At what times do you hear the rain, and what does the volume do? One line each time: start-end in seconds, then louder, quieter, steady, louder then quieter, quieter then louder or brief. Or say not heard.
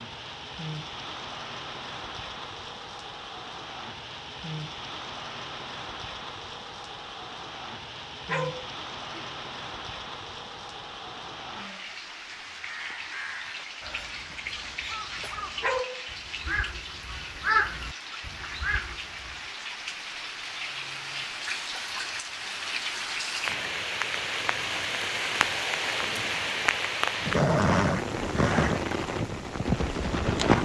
0.0-30.6 louder.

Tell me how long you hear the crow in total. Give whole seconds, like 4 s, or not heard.
7 s.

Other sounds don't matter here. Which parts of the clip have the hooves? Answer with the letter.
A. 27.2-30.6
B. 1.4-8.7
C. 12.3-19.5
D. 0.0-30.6
A.